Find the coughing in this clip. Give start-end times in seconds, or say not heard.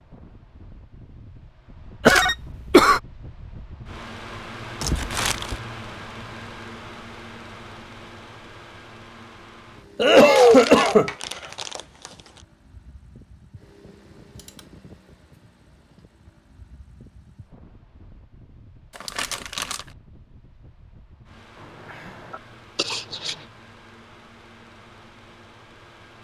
2.0-3.0, 9.9-11.1, 22.3-23.4.